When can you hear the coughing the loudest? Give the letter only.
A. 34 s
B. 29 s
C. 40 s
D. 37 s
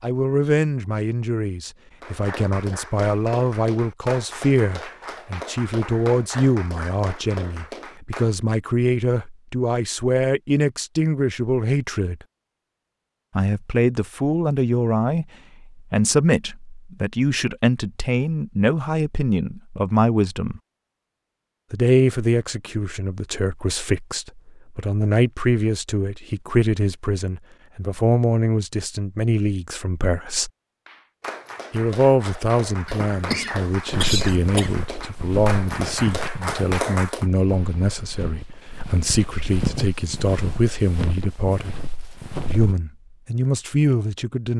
A.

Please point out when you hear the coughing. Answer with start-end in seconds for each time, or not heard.
32.9-34.8.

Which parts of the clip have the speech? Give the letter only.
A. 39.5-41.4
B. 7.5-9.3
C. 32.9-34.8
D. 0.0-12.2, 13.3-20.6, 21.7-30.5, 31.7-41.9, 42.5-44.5
D.